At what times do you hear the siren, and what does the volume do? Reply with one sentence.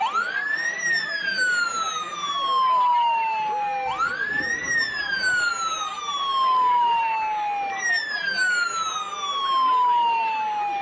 The siren can be heard from 0.0 to 10.7 s, at a steady volume.